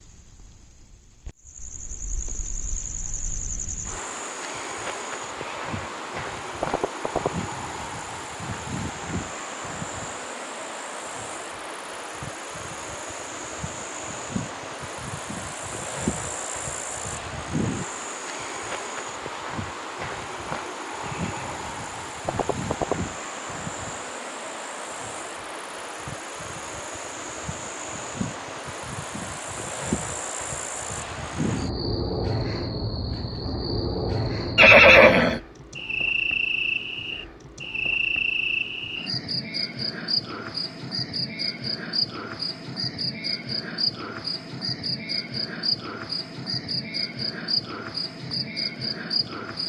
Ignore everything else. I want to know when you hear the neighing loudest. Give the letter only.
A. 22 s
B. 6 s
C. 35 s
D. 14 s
C.